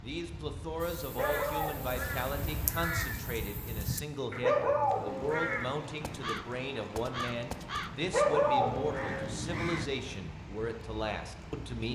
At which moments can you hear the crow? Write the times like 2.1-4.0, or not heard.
0.8-10.2.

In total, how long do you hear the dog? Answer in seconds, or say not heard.
3 s.